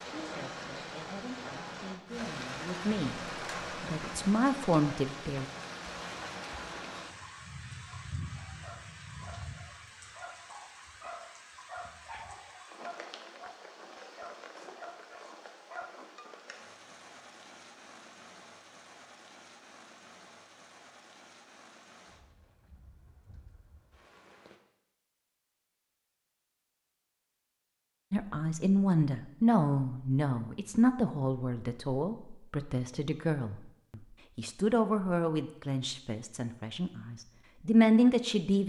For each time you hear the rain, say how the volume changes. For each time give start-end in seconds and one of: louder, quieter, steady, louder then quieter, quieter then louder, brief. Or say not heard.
0.0-24.6 quieter.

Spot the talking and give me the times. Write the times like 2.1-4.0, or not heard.
0.1-3.2, 3.8-5.5, 28.1-38.6.